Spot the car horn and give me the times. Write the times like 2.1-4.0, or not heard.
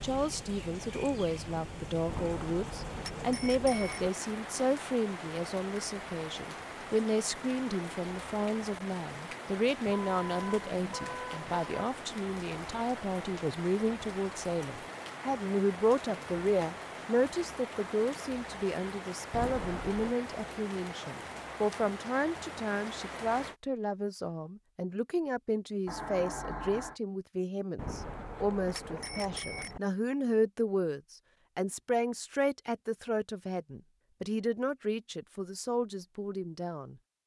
9.8-11.7, 25.9-27.0.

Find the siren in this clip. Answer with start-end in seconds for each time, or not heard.
not heard.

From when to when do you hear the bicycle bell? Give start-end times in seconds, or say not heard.
2.0-4.1, 19.3-20.1, 27.8-29.8.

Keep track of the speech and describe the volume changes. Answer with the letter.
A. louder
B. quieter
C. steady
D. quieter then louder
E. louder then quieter
C.